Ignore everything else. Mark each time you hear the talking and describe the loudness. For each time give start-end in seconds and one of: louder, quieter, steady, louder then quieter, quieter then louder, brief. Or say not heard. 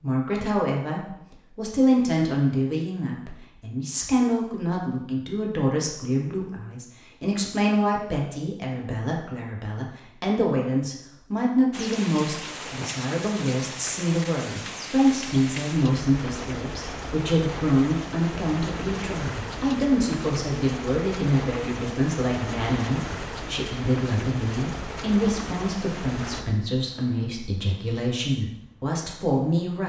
0.0-29.8 steady.